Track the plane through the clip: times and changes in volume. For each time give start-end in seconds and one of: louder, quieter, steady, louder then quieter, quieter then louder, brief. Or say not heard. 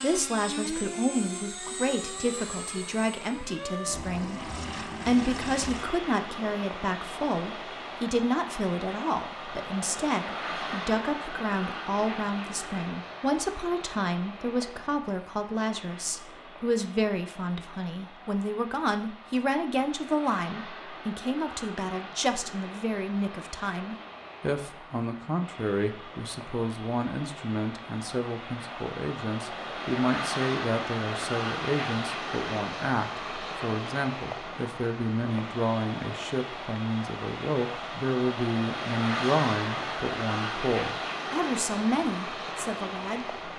0.0-43.5 quieter then louder.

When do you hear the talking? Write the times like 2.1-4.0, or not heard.
0.0-4.4, 5.0-43.4.